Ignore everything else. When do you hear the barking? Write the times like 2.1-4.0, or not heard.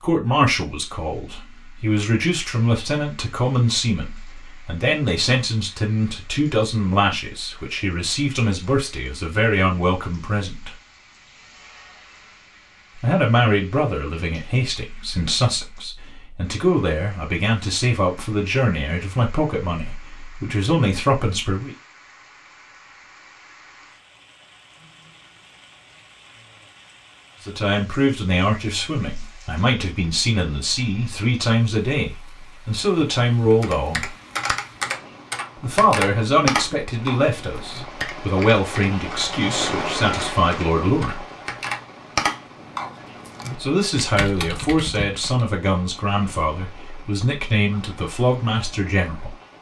not heard.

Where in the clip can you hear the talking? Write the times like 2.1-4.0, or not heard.
0.0-10.8, 13.0-21.8, 27.4-34.1, 35.6-41.2, 43.5-49.4.